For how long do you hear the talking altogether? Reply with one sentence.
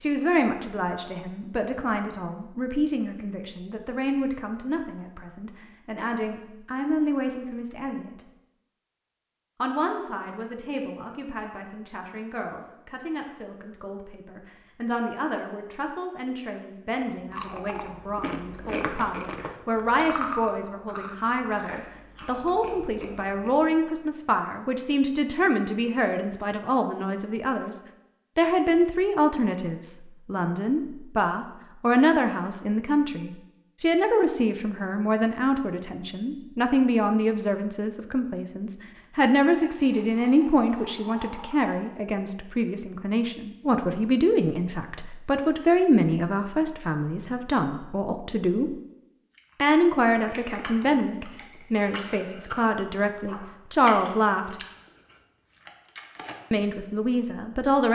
You can hear the talking for 54 seconds altogether.